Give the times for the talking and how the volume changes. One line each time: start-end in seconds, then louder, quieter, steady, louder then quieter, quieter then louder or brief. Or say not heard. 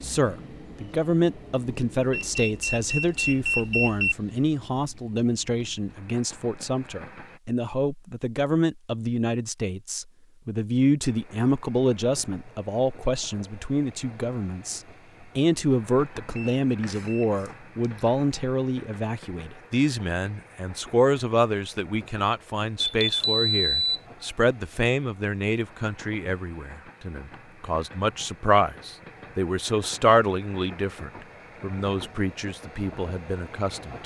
0.0-34.0 steady.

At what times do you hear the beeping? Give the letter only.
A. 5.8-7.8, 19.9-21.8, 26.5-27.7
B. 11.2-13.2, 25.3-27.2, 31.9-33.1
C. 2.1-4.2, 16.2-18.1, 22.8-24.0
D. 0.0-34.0
C.